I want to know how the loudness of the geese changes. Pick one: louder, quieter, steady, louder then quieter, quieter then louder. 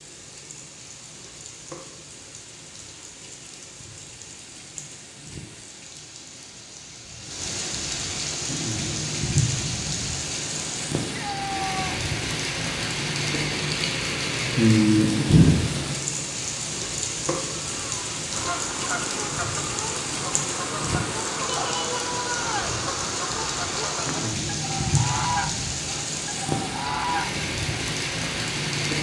steady.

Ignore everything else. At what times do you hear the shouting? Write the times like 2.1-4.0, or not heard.
11.1-11.9, 21.4-22.8.